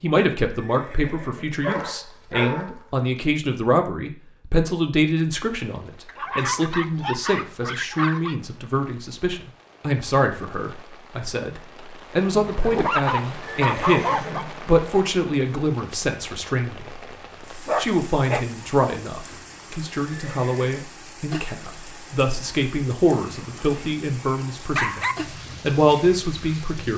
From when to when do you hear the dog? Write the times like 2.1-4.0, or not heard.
1.6-2.8, 6.0-8.3, 12.2-14.4, 17.6-18.4, 23.1-25.1.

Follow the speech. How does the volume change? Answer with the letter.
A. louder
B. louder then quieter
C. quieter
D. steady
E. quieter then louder
D.